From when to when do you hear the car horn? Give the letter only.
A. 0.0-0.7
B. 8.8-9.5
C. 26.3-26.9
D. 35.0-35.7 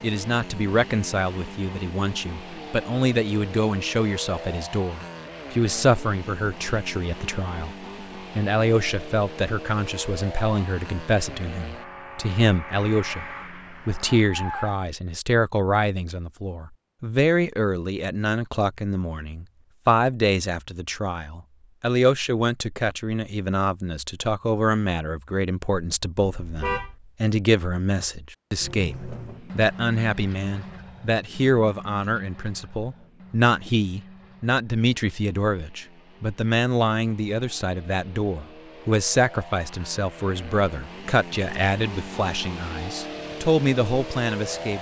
C.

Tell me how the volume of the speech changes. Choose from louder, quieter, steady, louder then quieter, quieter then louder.
steady.